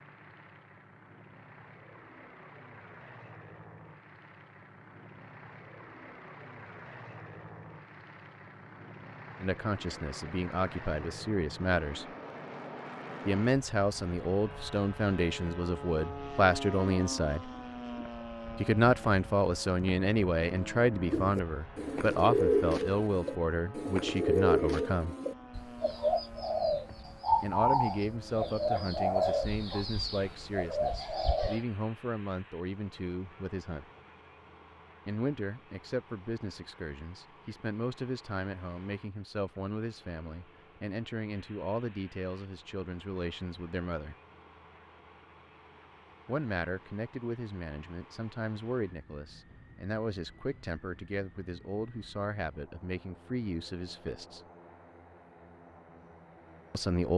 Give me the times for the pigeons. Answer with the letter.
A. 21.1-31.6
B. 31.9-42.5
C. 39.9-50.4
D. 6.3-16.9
A.